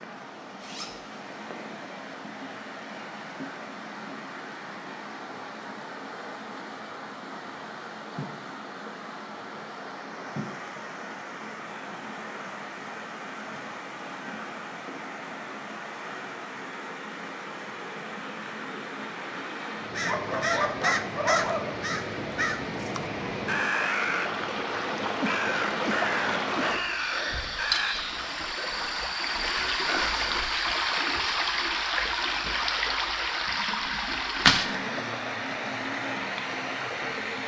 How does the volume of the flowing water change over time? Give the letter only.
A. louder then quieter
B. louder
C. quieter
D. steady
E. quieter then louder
B.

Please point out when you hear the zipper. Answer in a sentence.
You can hear the zipper from 0.6 to 1.1 s.